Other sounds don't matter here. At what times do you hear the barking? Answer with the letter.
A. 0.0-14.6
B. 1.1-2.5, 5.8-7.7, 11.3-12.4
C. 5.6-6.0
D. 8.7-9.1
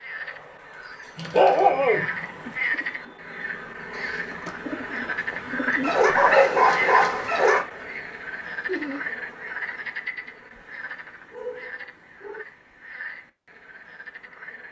B.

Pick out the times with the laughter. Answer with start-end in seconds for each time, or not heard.
8.7-9.1.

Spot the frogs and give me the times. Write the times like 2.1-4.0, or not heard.
0.0-14.6.